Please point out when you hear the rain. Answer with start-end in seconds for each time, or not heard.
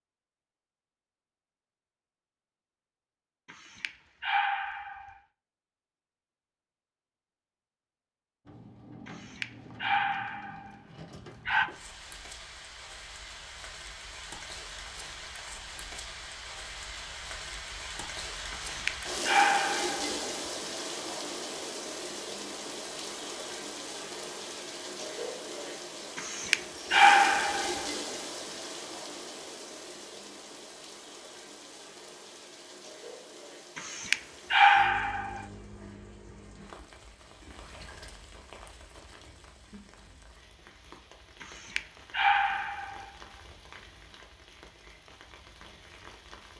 8.4-46.5.